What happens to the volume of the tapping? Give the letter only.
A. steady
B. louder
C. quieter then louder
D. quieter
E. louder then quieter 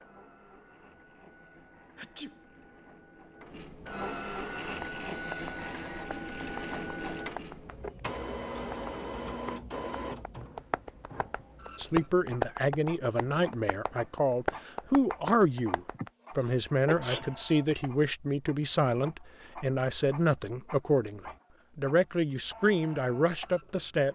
B.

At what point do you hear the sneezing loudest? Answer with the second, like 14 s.
17 s.